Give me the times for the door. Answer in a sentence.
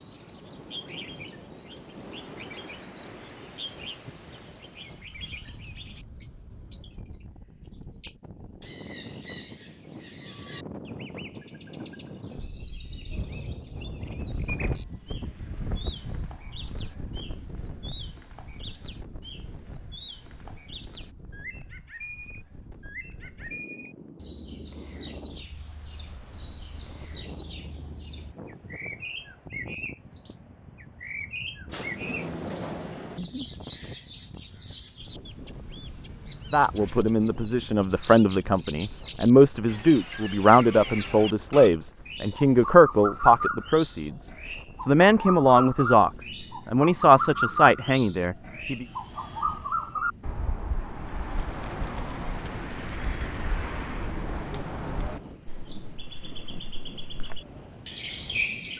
You can hear the door from 31.6 to 33.2 s.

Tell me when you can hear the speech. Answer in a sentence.
You can hear the speech from 36.5 to 48.9 s.